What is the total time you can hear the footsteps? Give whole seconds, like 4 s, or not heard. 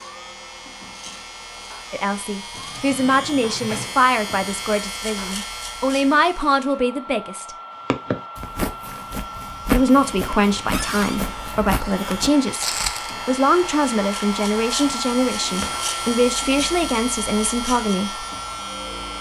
5 s.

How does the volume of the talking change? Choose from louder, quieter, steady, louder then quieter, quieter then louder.
steady.